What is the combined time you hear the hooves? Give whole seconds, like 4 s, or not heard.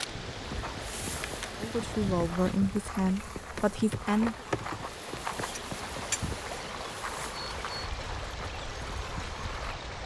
9 s.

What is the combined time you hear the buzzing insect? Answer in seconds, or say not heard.
10 s.